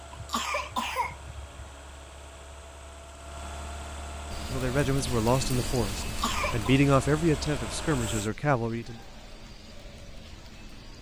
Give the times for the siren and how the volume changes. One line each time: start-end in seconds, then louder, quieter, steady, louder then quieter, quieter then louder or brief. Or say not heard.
not heard.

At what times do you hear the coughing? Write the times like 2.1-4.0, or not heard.
0.1-1.7, 6.0-6.8.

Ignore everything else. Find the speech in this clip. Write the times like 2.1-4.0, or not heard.
4.5-9.0.